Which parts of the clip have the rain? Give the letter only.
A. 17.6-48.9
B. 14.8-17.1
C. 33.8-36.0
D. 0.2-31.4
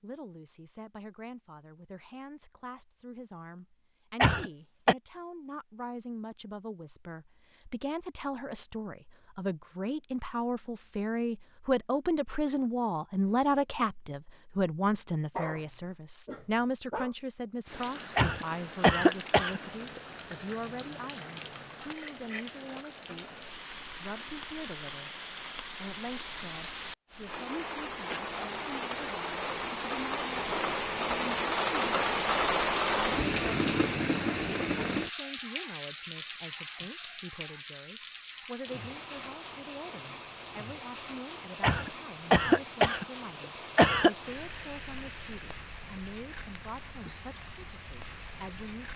A.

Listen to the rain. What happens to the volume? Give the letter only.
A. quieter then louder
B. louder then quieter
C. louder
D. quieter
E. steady
B.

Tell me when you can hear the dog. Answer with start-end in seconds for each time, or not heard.
14.8-17.1.